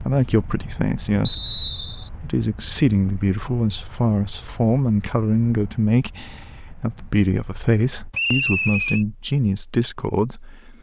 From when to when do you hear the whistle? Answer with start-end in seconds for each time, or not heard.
1.2-2.1, 8.1-9.1.